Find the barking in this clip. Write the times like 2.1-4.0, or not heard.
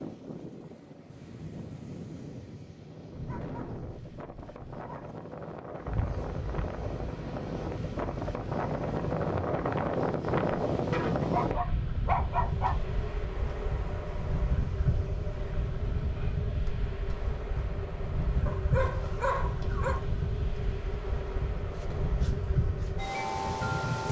3.1-5.2, 11.2-12.8, 18.4-20.0.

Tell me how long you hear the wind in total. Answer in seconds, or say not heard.
24 s.